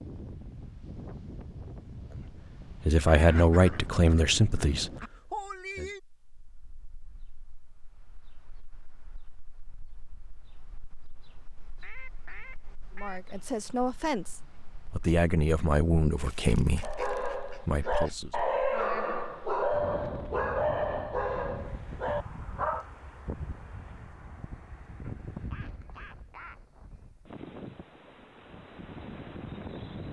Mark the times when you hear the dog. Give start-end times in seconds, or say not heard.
16.8-22.9.